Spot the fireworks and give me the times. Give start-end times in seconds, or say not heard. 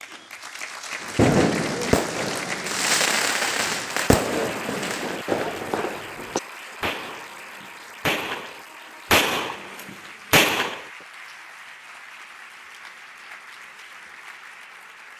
1.1-10.8.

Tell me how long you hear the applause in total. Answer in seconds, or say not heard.
15 s.